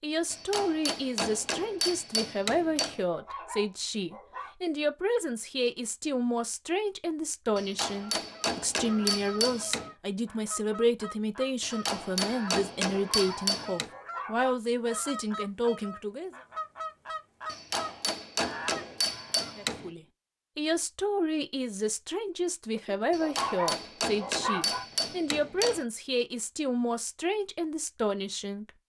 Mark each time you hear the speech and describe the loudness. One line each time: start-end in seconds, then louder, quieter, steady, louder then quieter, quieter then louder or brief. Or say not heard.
0.0-16.3 steady
19.6-28.7 steady.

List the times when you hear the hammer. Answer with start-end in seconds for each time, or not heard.
0.3-3.0, 7.5-9.9, 11.6-13.9, 17.4-19.9, 23.1-25.9.